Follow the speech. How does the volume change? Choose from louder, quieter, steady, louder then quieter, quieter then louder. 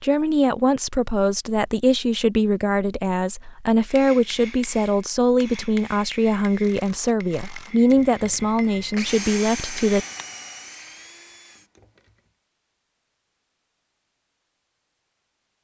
steady.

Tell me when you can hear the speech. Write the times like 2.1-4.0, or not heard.
0.0-10.1.